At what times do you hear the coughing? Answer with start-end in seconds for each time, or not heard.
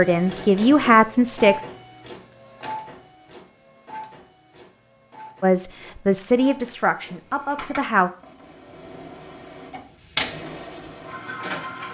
not heard.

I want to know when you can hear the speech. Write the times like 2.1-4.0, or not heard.
0.0-1.6, 5.4-8.1.